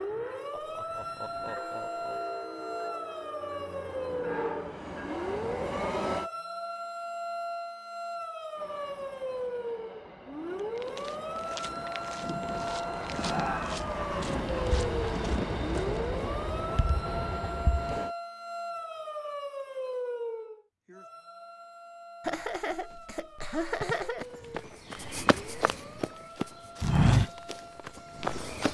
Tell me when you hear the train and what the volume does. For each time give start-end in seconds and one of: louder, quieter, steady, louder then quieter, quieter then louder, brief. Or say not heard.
0.0-6.3 louder
8.5-18.1 louder.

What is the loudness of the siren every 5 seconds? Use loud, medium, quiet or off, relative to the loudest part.
loud, loud, loud, loud, medium, quiet.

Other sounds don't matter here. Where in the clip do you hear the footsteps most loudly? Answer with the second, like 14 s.
27 s.